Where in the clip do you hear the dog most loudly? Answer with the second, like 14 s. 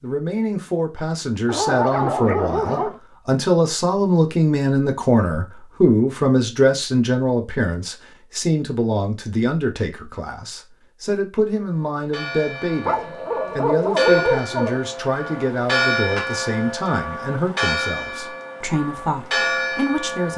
14 s.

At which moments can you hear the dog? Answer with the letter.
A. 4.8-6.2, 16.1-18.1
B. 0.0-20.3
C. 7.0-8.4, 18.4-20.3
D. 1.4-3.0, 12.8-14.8
D.